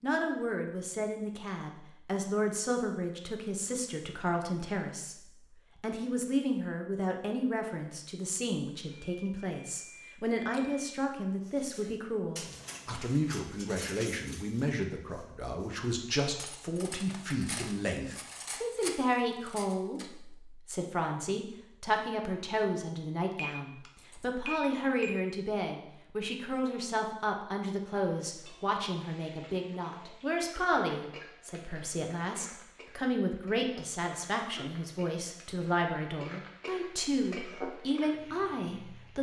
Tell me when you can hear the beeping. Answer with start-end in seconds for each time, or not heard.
8.9-10.9, 23.4-25.1.